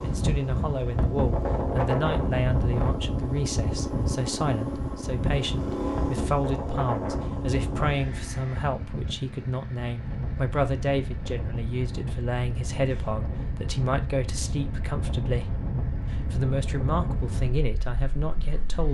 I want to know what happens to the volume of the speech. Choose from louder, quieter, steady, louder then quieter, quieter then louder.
steady.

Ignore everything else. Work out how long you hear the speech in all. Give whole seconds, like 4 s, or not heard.
19 s.